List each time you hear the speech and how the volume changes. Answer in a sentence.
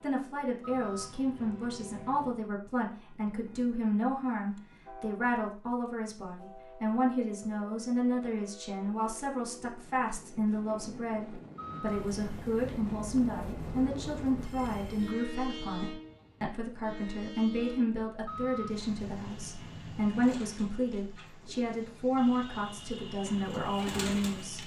The speech can be heard from 0.0 to 24.6 s, at a steady volume.